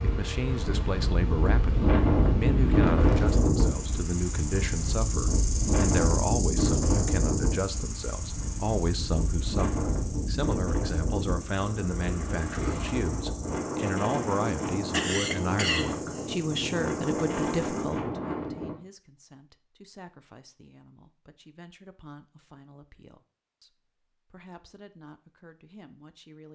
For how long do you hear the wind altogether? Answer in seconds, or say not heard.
19 s.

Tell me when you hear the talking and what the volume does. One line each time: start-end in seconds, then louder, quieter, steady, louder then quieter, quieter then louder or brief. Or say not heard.
0.0-26.5 quieter.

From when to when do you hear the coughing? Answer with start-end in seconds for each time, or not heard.
14.9-16.0.